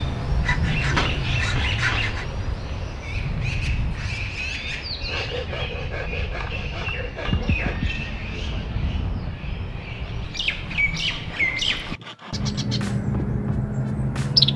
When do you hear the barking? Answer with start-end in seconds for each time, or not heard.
not heard.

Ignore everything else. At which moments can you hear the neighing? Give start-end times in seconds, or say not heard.
7.2-9.3.